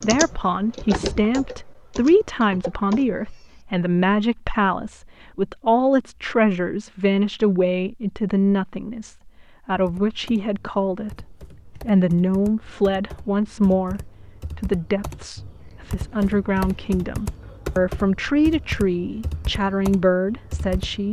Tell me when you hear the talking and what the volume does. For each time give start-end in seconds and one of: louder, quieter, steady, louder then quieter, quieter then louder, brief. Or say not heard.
0.0-21.0 steady.